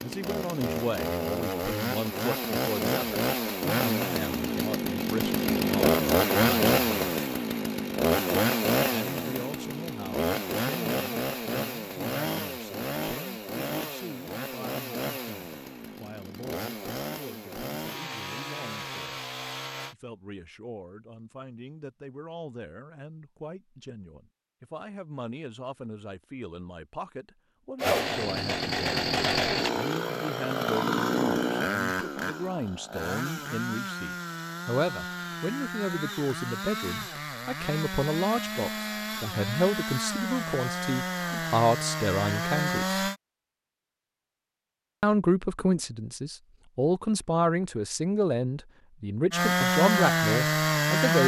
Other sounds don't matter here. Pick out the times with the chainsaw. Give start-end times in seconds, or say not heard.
0.0-19.9, 27.8-43.1, 49.3-51.2.